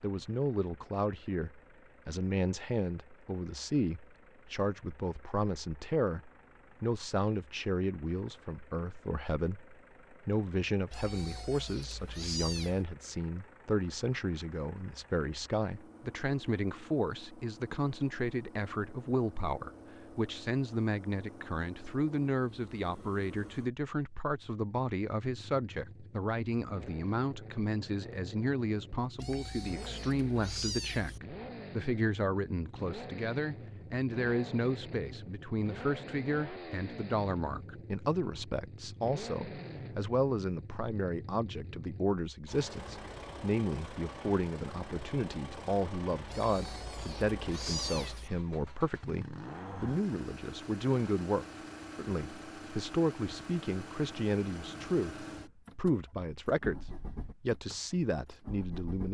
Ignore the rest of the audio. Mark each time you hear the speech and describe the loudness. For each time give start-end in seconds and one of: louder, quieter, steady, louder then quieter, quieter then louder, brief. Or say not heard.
0.0-59.0 steady.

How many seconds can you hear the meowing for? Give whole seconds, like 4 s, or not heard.
6 s.